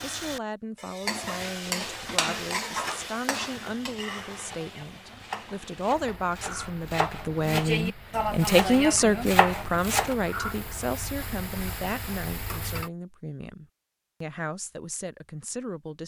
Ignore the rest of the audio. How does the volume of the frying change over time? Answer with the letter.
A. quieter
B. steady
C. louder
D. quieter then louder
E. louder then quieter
D.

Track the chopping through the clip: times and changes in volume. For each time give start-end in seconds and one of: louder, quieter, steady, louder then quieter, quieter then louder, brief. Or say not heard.
4.4-10.2 louder.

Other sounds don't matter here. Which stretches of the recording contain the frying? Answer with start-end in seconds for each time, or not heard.
0.0-12.9.